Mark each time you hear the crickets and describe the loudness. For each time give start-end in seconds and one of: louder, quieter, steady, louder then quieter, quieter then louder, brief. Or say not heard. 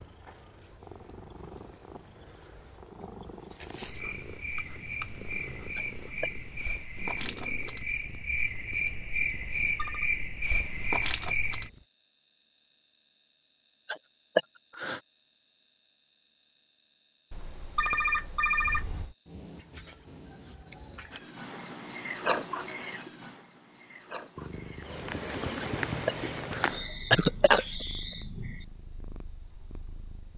0.0-30.3 louder then quieter.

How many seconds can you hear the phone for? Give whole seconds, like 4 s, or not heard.
3 s.